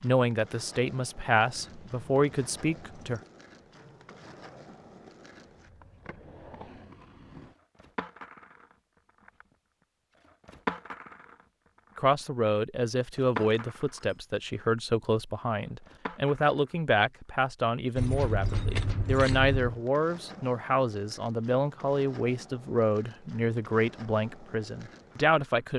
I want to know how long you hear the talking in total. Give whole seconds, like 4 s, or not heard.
17 s.